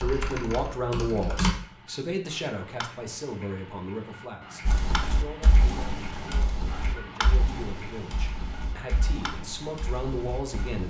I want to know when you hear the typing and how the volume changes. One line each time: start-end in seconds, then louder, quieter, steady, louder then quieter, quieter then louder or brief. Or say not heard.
0.0-1.6 brief
4.7-10.8 quieter.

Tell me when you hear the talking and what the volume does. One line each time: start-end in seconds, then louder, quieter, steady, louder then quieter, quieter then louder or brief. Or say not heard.
0.0-10.8 quieter then louder.